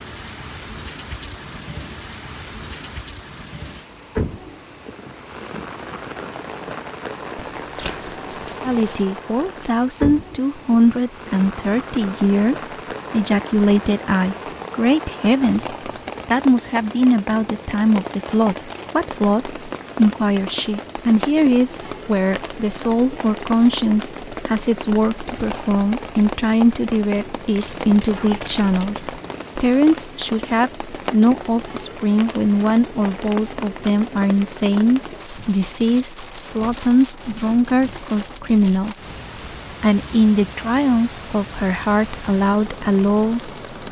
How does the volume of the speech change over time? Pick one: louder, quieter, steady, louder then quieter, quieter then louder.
steady.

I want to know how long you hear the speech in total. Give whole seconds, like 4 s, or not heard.
34 s.